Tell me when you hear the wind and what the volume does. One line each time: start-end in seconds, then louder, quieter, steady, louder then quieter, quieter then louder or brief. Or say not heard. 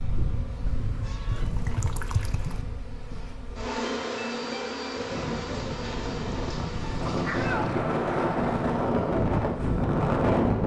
4.9-10.6 louder.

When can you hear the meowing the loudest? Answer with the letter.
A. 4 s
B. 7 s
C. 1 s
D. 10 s
B.